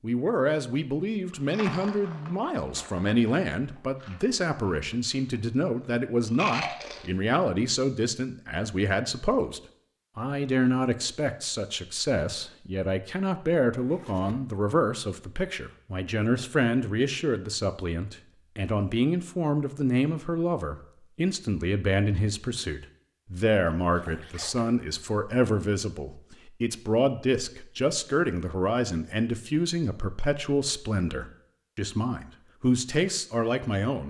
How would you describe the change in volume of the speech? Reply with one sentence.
The volume of the speech stays about the same.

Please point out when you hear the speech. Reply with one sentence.
The speech can be heard from 0.0 to 34.0 s.